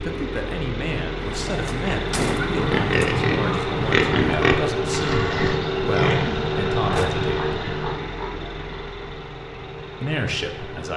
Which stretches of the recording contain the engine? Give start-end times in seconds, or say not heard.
0.0-10.9.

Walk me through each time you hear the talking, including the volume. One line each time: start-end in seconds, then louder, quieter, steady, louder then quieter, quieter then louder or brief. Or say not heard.
0.0-7.3 steady
10.0-10.9 brief.